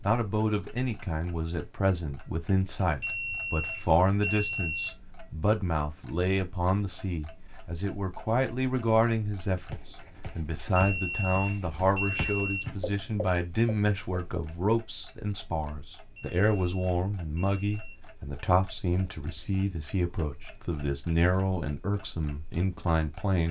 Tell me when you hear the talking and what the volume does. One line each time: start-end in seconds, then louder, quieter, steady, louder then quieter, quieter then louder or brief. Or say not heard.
0.1-23.4 steady.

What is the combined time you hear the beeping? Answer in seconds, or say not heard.
6 s.